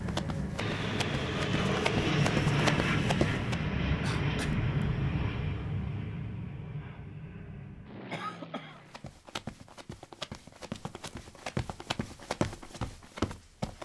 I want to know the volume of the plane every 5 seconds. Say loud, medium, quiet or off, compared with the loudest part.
loud, medium, off.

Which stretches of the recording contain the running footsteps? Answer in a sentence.
The running footsteps can be heard from 0.0 to 3.6 s and from 8.8 to 13.8 s.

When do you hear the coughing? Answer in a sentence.
You can hear the coughing from 4.0 to 4.6 s and from 8.1 to 8.8 s.